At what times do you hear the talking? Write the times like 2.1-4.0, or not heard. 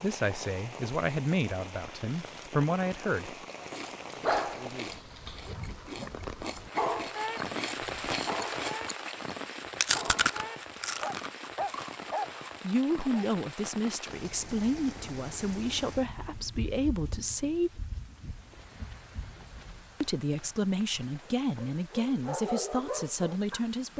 0.0-3.4, 12.6-17.8, 20.0-23.9.